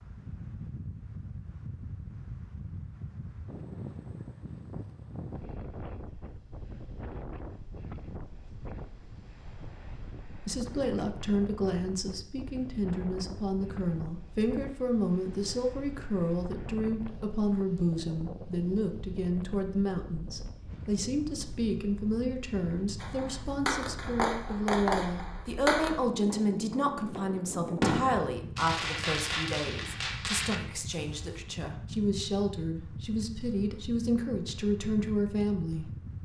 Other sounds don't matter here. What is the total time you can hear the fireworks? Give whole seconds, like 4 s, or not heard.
8 s.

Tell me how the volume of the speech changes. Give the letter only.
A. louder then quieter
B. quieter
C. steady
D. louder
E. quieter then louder
C.